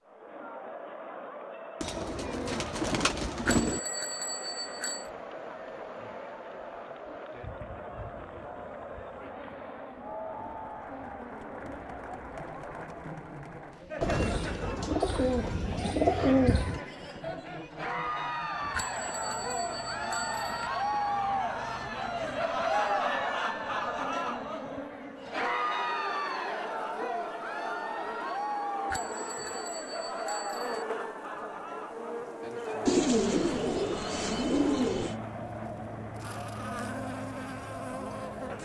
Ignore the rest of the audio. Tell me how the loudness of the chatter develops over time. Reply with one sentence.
The volume of the chatter goes up, then down.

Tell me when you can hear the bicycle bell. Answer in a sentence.
The bicycle bell can be heard from 3.5 to 5.1 s, from 18.7 to 20.7 s and from 28.9 to 30.9 s.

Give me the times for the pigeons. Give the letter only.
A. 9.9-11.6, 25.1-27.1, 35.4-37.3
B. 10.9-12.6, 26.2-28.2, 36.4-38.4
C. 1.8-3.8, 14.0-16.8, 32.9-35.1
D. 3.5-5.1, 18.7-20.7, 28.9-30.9
C.